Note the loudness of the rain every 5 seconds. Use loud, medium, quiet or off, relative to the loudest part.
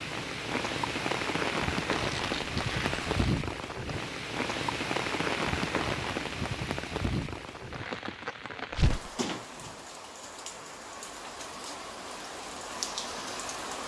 loud, loud, medium.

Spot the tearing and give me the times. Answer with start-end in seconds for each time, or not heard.
1.9-3.1, 8.7-9.1.